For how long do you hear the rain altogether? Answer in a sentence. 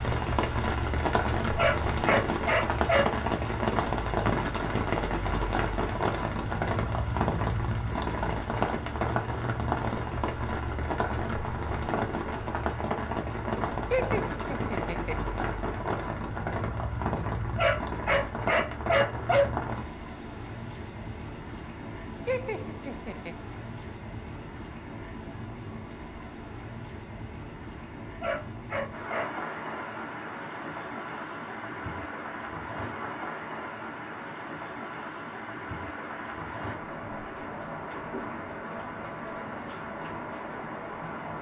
The rain can be heard for 41 seconds in total.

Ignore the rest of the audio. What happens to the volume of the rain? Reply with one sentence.
The loudness of the rain goes down.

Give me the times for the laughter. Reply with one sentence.
You can hear the laughter from 13.9 to 15.2 s and from 22.2 to 23.4 s.